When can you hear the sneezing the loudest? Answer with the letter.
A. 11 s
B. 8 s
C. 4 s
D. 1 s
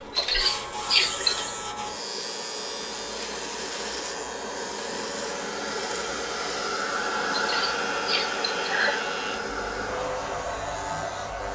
D.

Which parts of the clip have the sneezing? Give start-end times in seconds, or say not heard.
0.1-1.6, 7.3-9.1.